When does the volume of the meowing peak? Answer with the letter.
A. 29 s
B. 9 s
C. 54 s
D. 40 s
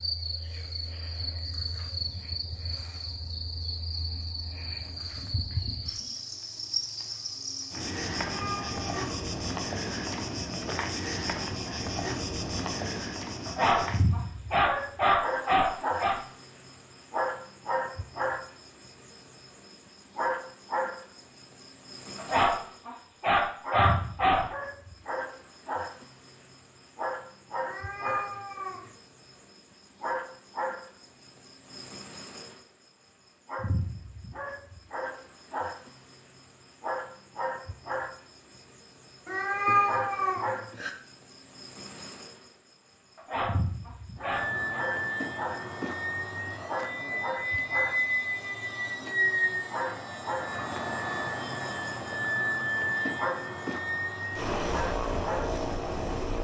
D.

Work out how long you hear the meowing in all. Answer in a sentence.
You can hear the meowing for 4 seconds altogether.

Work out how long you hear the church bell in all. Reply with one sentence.
You can't hear the church bell here.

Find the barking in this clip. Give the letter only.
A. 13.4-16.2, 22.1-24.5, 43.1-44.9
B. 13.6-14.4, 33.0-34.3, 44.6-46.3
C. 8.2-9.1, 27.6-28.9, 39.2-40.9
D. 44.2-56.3
A.